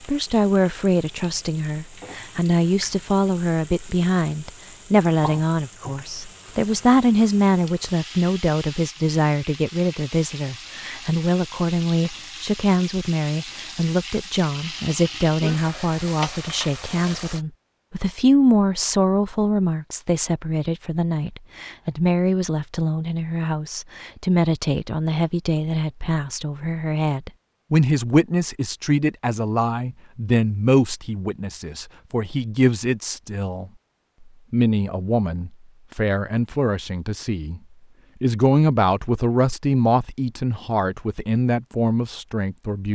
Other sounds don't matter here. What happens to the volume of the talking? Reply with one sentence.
The volume of the talking stays about the same.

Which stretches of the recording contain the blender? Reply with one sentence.
The blender can't be heard in this clip.